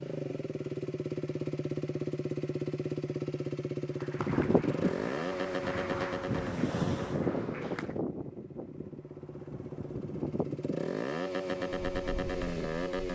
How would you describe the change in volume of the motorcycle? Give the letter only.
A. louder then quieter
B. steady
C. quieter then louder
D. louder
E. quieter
C.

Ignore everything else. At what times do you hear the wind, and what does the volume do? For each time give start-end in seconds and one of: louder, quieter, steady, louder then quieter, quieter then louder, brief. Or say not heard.
4.2-13.1 quieter.